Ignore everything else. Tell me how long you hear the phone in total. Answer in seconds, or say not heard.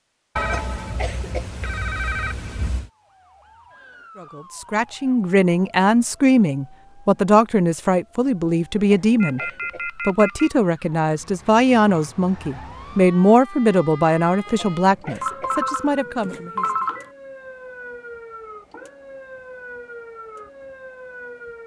6 s.